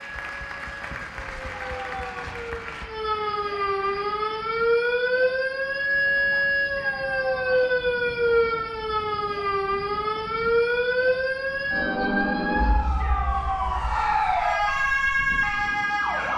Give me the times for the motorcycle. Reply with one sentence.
You can't hear the motorcycle here.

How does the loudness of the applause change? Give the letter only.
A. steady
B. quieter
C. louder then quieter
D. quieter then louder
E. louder
B.